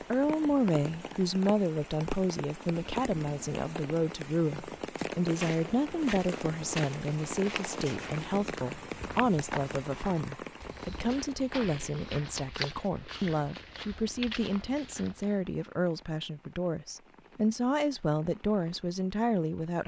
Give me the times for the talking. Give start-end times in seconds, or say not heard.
0.0-19.8.